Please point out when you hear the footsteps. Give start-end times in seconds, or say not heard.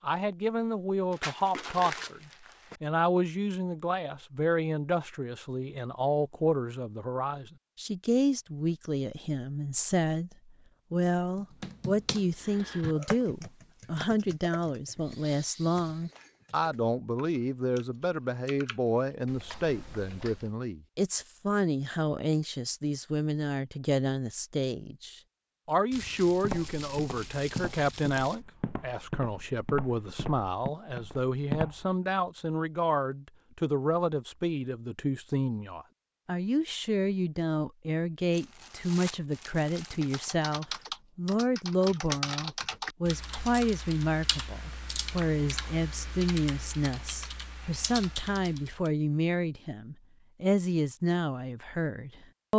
26.3-31.9.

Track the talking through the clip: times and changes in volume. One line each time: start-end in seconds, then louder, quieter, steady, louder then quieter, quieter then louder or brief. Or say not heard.
0.0-52.5 steady.